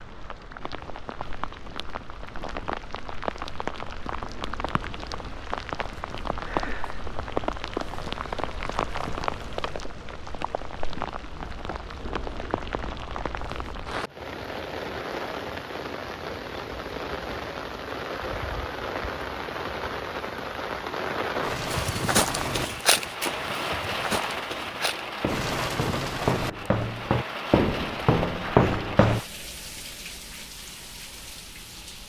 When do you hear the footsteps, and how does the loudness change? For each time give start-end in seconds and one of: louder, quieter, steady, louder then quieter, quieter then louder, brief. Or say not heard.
21.7-29.2 quieter then louder.